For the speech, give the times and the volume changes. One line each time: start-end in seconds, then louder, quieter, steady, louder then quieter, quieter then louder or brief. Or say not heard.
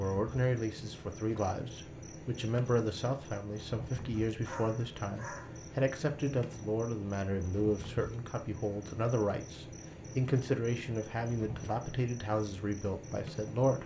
0.0-13.8 steady.